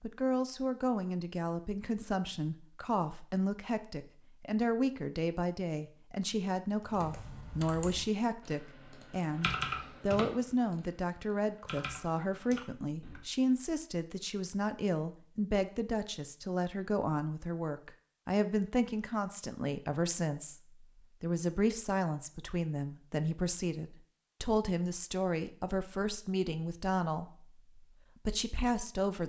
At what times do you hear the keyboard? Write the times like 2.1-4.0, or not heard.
6.8-13.2.